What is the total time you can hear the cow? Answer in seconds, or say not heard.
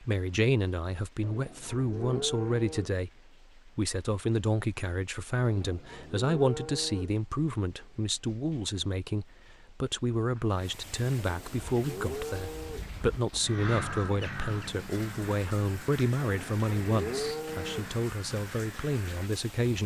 7 s.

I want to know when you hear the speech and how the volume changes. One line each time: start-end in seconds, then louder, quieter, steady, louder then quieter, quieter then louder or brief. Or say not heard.
0.0-19.8 steady.